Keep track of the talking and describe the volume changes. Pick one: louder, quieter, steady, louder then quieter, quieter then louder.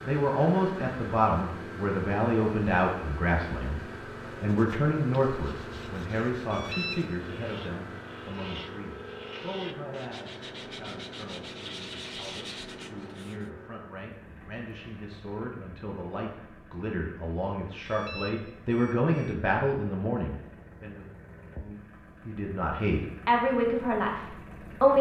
quieter then louder.